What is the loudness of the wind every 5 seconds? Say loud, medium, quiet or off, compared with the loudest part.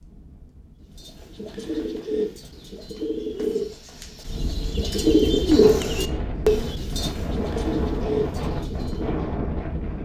quiet, loud.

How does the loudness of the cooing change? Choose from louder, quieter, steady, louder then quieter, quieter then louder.
louder then quieter.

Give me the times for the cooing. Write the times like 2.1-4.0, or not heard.
0.9-9.3.